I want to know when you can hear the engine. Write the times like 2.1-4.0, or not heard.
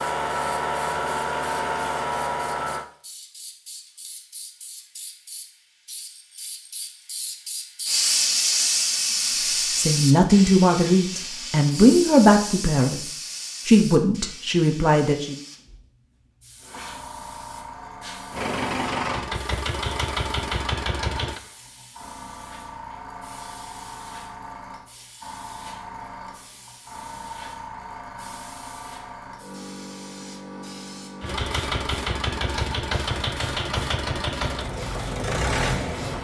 0.0-2.9, 18.3-21.4, 31.2-36.1.